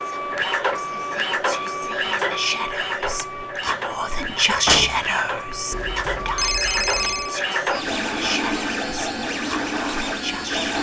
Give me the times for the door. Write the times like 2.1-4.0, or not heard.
4.7-5.1.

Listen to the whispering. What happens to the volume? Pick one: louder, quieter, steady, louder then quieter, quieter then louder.
louder then quieter.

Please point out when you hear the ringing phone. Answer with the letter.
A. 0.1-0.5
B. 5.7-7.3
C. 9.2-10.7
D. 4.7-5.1
B.